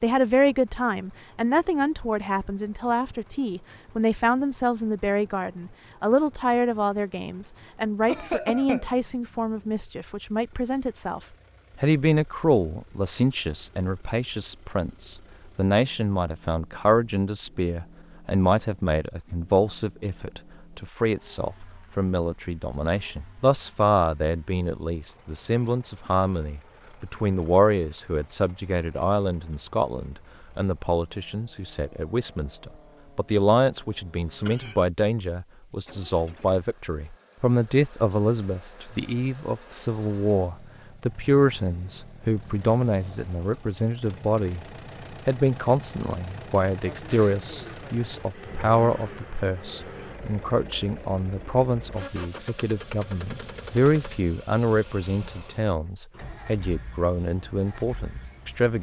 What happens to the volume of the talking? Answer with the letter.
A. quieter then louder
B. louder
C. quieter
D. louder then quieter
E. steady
E.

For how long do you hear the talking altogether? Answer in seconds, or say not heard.
58 s.